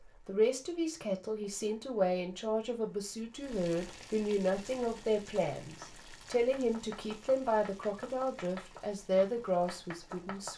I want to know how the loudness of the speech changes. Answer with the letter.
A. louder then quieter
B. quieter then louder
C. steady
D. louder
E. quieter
C.